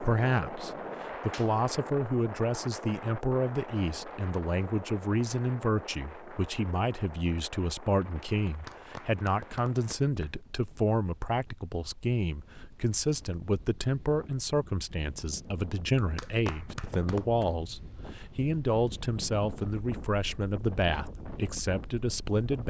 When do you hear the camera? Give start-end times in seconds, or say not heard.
not heard.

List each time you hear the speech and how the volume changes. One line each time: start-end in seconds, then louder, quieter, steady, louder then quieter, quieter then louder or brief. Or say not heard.
0.0-22.6 steady.